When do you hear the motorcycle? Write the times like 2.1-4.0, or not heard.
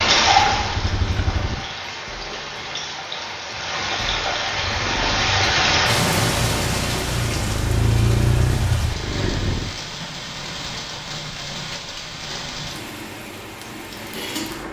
0.1-1.6, 4.5-9.8.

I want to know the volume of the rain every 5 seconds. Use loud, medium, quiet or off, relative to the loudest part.
loud, loud, medium.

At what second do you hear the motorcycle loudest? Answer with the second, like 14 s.
8 s.